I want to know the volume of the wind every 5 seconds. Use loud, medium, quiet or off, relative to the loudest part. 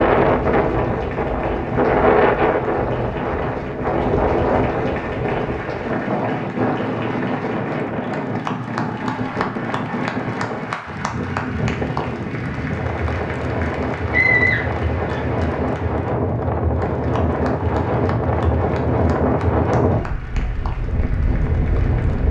loud, medium, medium, loud, medium.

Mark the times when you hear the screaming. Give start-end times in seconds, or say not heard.
14.1-15.2.